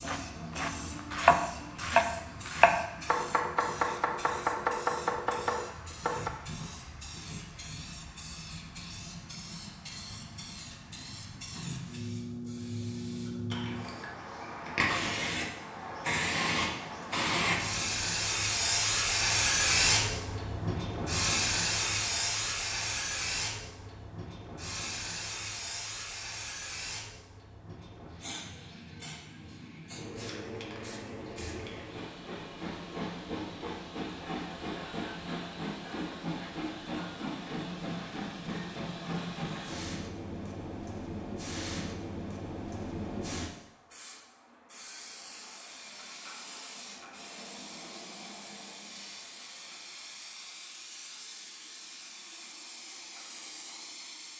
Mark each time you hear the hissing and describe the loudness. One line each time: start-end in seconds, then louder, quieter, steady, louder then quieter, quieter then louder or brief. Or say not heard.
0.0-54.3 louder then quieter.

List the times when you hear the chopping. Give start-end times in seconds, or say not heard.
0.0-6.3.